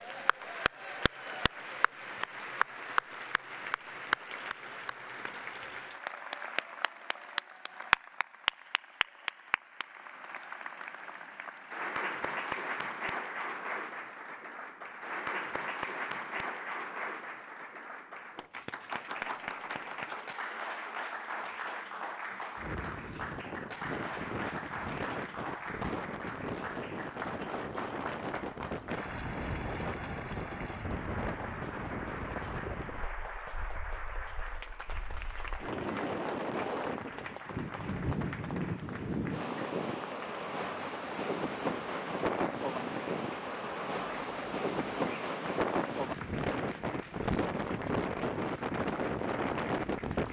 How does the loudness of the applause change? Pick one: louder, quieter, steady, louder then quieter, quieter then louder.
quieter.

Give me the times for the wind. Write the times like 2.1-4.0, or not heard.
22.6-50.2.